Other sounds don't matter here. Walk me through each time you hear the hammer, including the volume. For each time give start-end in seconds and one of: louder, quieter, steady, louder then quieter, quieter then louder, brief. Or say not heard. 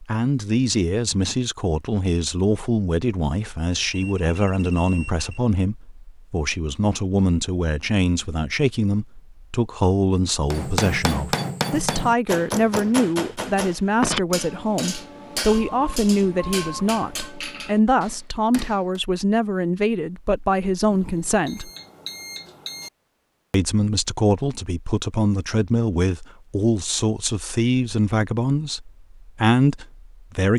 10.5-19.0 quieter.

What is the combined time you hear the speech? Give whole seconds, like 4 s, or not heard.
29 s.